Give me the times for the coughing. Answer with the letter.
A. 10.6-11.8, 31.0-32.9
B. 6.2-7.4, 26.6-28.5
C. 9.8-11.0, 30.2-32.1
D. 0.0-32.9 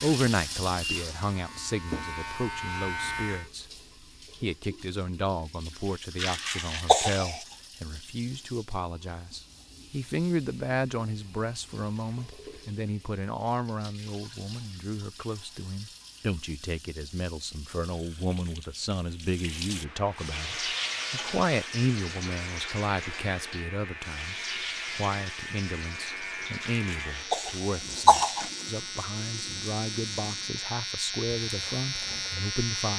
B.